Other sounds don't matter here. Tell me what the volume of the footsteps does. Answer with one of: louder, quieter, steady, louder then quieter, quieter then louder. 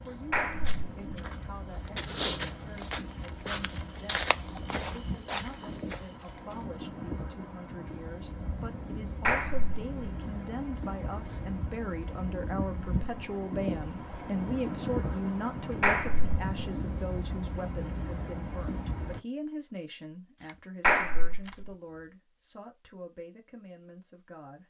louder then quieter.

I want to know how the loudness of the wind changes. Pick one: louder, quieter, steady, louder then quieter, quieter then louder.
louder.